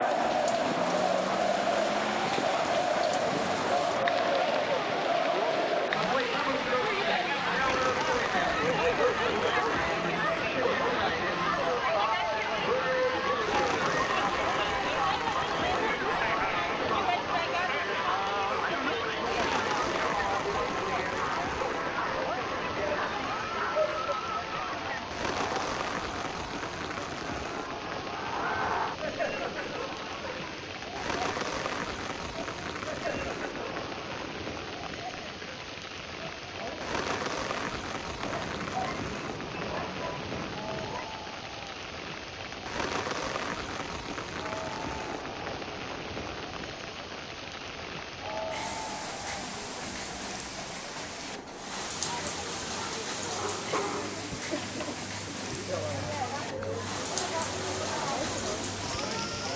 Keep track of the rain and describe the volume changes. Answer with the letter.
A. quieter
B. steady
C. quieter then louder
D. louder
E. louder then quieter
B.